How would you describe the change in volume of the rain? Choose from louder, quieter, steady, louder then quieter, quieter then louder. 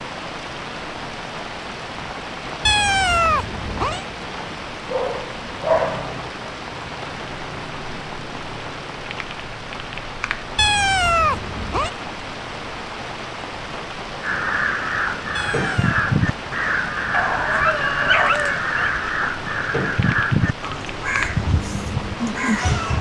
steady.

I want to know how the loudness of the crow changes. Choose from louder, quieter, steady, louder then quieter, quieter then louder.
steady.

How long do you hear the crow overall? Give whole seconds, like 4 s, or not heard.
9 s.